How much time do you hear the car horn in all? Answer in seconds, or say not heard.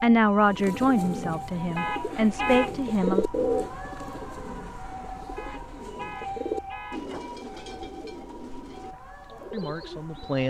3 s.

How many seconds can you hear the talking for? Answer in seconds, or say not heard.
5 s.